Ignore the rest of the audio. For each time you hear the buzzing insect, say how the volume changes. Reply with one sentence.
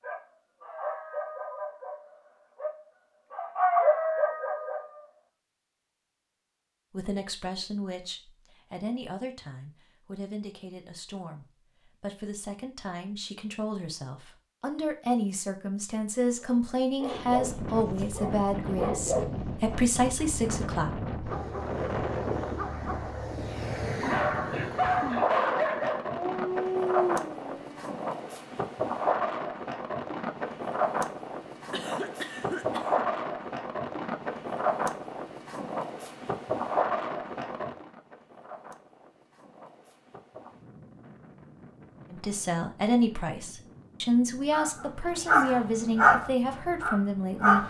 The buzzing insect can't be heard in this clip.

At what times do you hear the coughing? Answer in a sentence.
You can hear the coughing from 31.7 to 33.0 s.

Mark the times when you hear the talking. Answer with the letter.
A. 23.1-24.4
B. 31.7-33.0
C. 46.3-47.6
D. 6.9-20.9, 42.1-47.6
D.